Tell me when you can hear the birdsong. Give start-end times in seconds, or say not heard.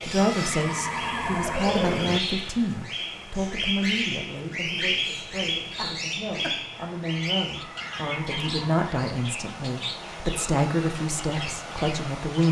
0.0-12.4.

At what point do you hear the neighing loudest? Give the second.
2 s.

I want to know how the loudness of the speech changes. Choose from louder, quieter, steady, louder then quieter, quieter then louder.
quieter then louder.